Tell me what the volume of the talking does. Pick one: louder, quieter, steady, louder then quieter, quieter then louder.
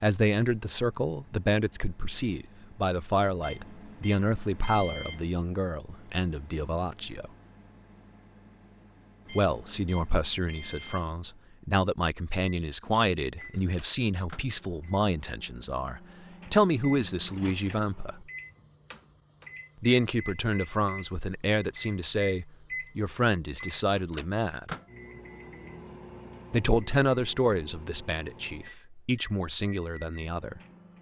steady.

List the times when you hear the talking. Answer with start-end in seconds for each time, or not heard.
0.0-7.3, 9.3-18.2, 19.8-24.7, 26.5-30.6.